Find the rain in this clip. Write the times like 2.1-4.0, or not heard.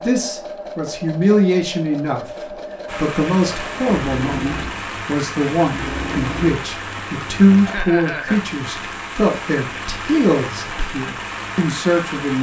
2.9-12.3.